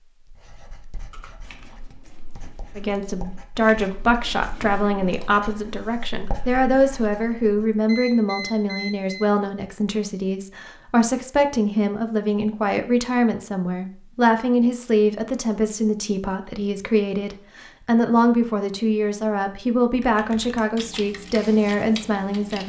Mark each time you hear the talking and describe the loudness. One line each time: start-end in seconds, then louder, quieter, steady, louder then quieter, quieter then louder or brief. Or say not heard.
2.8-22.6 steady.